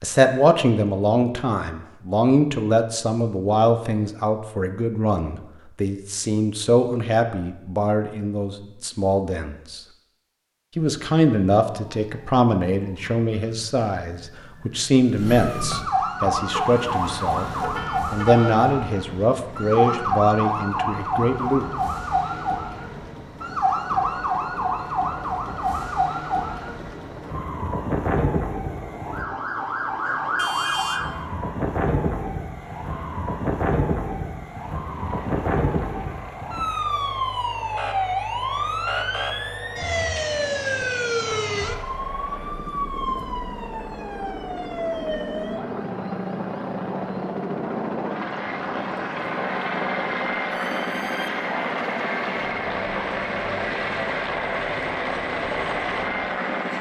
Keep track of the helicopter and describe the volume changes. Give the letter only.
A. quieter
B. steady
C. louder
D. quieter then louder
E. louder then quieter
C.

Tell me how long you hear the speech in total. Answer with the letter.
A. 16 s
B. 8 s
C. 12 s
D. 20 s
D.